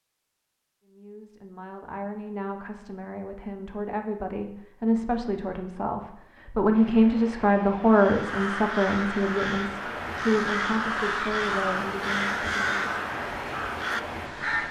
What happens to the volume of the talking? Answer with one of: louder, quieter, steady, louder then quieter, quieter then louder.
louder then quieter.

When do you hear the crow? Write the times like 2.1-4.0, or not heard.
7.8-14.6.